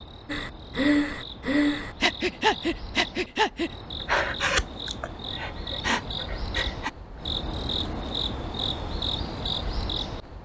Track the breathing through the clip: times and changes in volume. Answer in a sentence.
The breathing can be heard from 0.3 to 6.9 s, getting quieter.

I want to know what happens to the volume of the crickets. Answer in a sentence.
The volume of the crickets goes up.